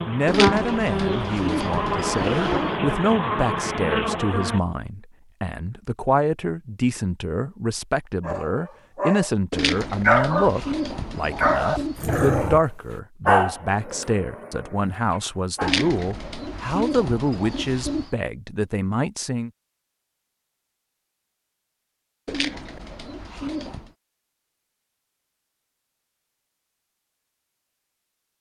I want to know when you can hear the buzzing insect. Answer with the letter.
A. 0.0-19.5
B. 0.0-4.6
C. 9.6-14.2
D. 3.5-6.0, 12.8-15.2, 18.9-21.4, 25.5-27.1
B.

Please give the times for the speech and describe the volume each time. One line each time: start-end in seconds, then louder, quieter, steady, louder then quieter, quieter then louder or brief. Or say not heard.
0.0-19.5 steady.